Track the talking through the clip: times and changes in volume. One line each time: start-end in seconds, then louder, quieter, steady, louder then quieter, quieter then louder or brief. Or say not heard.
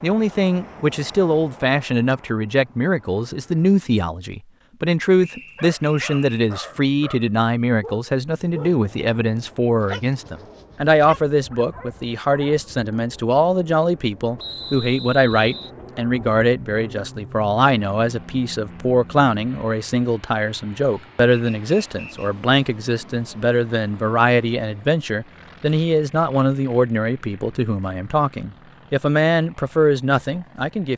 0.0-30.9 steady.